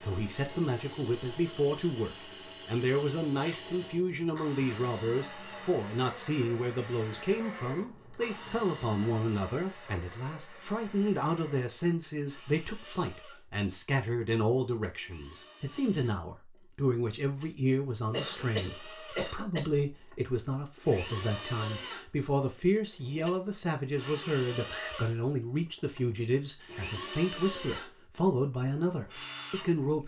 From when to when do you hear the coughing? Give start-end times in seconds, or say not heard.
18.1-19.8.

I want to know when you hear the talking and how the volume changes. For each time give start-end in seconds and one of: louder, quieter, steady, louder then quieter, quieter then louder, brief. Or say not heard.
0.0-30.0 steady.